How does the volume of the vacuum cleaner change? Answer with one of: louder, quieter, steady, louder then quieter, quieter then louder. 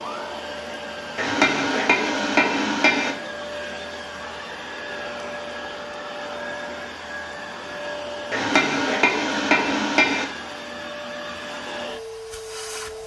steady.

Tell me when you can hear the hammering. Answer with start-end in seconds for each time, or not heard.
1.1-3.1, 8.3-10.2.